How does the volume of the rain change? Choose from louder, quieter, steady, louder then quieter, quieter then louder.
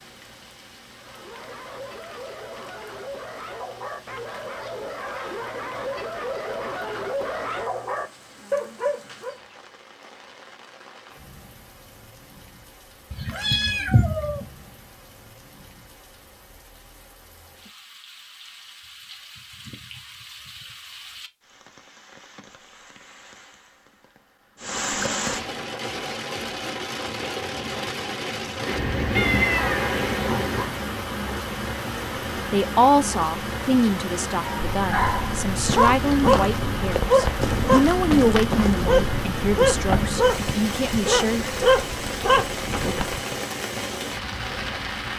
louder.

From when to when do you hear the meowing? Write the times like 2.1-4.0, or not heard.
13.1-14.5, 28.6-30.7.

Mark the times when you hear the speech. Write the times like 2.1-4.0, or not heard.
32.4-41.5.